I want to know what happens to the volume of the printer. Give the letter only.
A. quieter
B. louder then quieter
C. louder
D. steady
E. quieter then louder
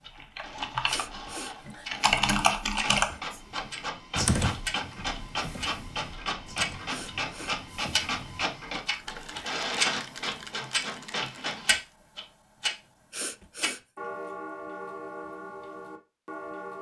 C.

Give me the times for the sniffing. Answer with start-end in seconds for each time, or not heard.
0.8-1.9, 6.5-7.5, 12.7-13.8.